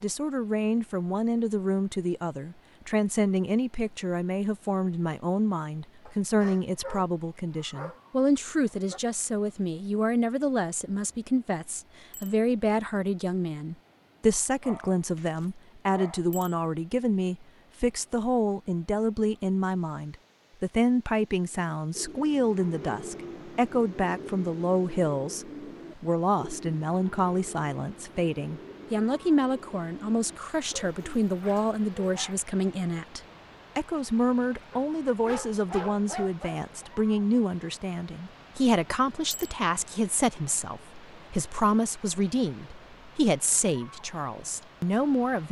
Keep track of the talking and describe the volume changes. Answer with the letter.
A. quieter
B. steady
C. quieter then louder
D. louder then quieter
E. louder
B.